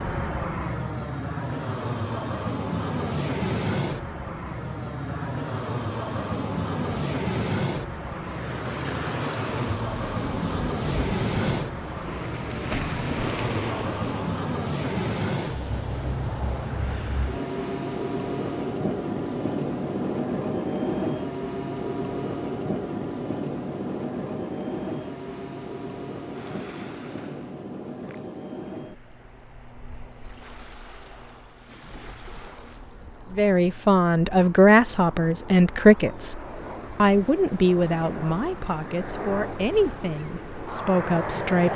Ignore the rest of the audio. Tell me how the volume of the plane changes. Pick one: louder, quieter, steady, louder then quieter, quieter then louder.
quieter.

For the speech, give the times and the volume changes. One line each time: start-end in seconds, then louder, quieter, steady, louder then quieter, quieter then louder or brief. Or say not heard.
33.3-41.7 quieter.